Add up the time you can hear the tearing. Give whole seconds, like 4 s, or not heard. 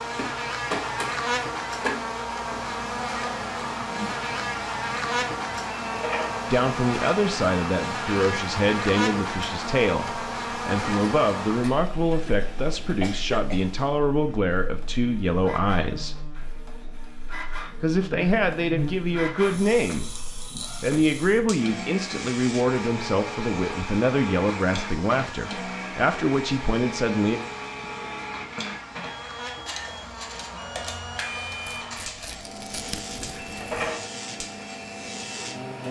2 s.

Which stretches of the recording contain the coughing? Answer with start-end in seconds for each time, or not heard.
12.1-13.7.